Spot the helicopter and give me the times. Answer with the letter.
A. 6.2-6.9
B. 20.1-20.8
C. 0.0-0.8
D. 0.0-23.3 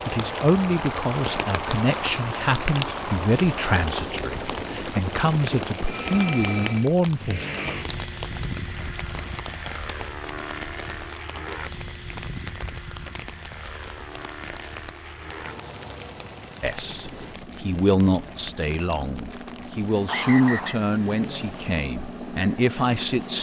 D.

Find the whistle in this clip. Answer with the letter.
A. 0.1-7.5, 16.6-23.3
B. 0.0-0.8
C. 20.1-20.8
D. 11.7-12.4
C.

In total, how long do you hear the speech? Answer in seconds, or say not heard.
14 s.